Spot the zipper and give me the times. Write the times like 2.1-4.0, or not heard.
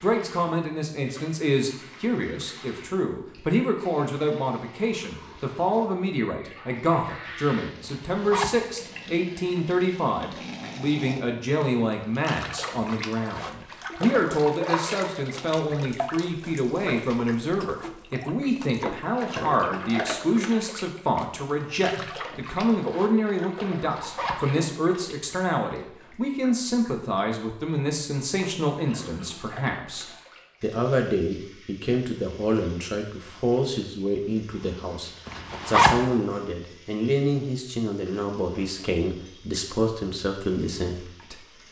7.8-8.7, 23.9-24.5, 35.2-36.0.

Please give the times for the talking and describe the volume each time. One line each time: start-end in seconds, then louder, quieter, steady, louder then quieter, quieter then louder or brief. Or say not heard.
0.0-41.6 steady.